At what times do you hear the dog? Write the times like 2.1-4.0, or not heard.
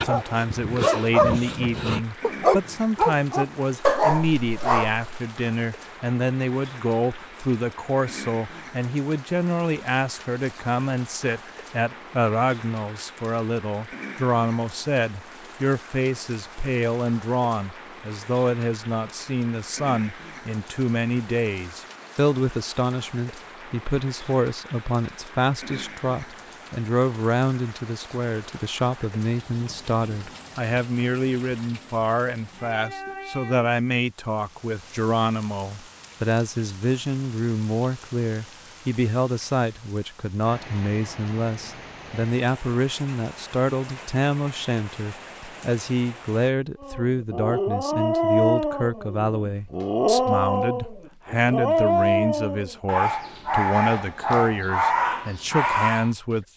0.0-5.0, 46.8-56.1.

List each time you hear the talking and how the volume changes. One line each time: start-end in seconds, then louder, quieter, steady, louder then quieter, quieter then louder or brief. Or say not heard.
0.0-56.5 steady.